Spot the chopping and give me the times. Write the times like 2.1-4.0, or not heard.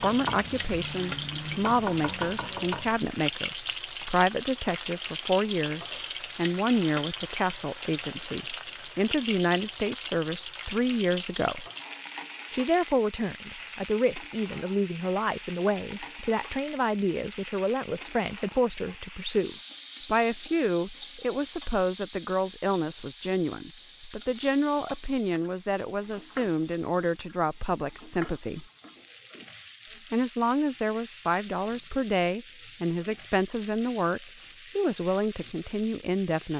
0.0-3.0.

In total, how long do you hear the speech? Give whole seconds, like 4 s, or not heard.
34 s.